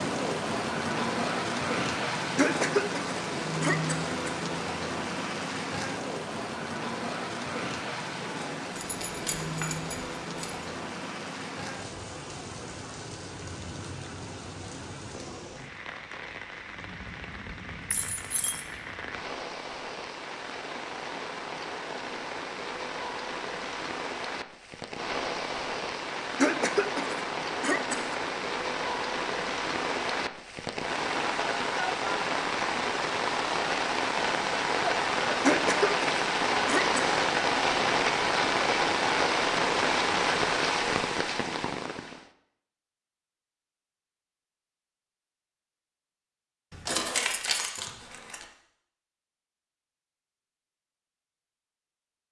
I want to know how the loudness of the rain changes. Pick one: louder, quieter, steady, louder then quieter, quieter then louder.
quieter then louder.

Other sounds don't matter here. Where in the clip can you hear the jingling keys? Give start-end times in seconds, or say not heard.
8.8-10.7, 17.9-18.6, 46.7-48.5.